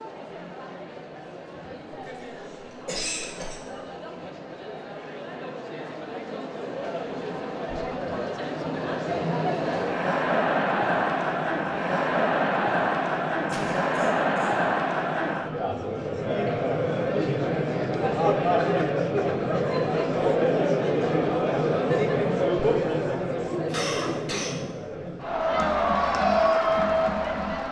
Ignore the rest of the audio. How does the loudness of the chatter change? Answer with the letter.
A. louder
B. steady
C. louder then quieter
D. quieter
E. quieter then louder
A.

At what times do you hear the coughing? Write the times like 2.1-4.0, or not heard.
2.9-3.6, 13.4-14.6, 23.6-24.6.